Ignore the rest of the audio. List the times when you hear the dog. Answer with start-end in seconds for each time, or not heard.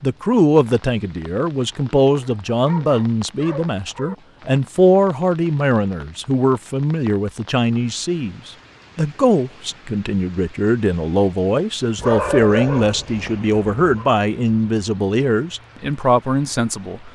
2.1-4.2, 11.9-14.1.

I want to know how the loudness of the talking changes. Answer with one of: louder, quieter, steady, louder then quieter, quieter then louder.
steady.